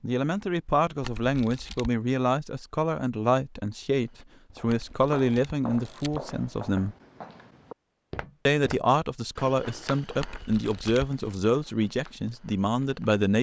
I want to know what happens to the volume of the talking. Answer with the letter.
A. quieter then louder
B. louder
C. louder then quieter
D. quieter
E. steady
E.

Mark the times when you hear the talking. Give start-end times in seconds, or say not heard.
0.0-7.0, 8.4-13.3.